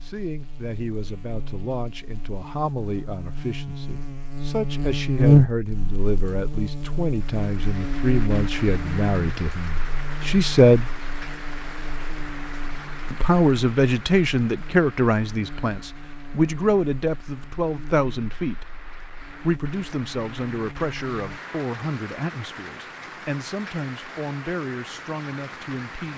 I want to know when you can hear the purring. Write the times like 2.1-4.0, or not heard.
not heard.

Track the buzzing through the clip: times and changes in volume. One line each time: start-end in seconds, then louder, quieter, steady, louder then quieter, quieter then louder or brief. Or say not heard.
0.0-21.4 louder then quieter.